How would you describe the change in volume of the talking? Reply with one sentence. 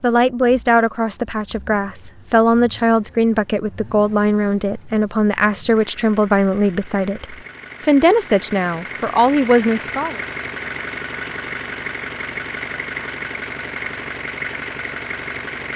The loudness of the talking stays about the same.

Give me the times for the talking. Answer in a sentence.
You can hear the talking from 0.0 to 10.2 s.